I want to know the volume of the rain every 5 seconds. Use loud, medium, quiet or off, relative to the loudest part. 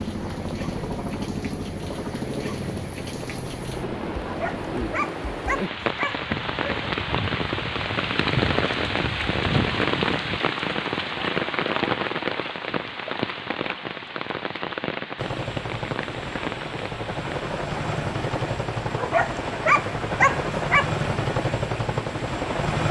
medium, loud, loud, medium, off.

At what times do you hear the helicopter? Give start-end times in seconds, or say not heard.
0.0-4.8, 15.2-22.8.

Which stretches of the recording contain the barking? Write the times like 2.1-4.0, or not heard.
4.2-7.0, 18.9-20.9.